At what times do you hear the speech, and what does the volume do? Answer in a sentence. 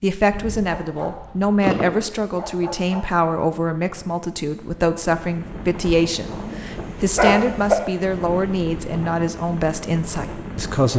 You can hear the speech from 0.0 to 10.9 s, at a steady volume.